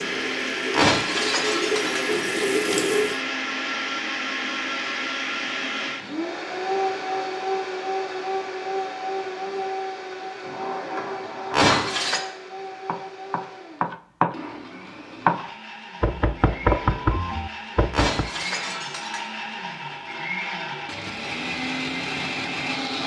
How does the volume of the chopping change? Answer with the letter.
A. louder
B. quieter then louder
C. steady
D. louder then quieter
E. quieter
D.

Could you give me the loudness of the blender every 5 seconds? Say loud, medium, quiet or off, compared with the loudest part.
loud, loud, medium, medium, loud.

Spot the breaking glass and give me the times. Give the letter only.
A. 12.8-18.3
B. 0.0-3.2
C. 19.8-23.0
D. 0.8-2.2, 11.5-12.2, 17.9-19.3
D.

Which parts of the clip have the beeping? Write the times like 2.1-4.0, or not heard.
not heard.